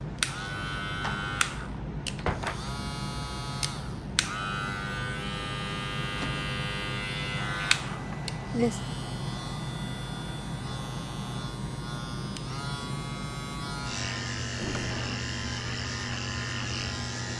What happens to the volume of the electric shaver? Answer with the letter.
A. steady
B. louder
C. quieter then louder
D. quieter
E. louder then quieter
A.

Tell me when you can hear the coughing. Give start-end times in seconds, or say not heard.
8.1-8.8.